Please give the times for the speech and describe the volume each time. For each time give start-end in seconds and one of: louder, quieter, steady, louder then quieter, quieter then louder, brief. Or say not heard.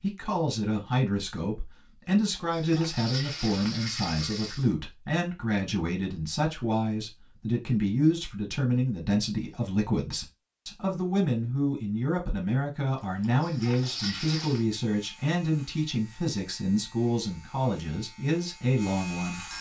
0.0-19.4 steady.